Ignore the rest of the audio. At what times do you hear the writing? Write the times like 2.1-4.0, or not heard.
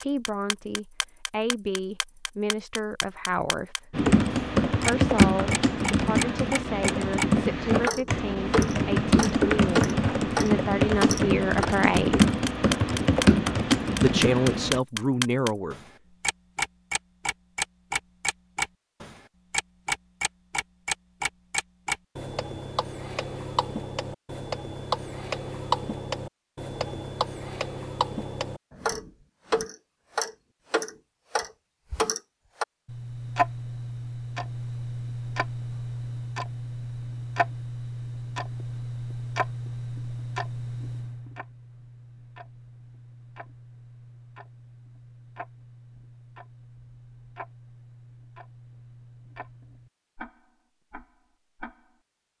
not heard.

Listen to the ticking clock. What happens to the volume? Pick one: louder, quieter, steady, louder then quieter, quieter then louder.
quieter.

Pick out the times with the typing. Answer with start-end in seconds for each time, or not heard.
3.9-14.8.